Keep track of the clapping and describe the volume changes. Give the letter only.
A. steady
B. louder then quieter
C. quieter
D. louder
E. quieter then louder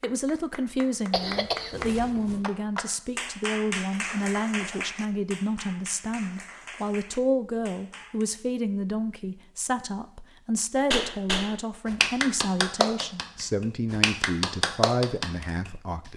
E.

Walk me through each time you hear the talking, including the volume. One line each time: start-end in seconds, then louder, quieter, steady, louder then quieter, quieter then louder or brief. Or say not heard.
0.0-16.1 steady.